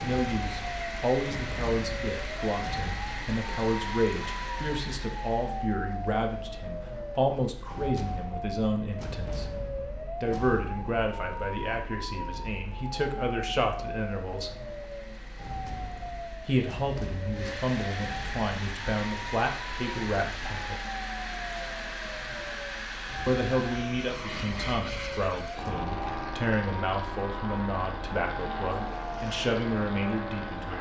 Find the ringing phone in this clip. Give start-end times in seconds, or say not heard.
not heard.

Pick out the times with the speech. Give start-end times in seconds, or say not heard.
0.0-9.4, 10.2-14.6, 16.4-20.8, 23.2-30.7.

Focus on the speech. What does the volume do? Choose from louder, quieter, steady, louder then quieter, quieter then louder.
steady.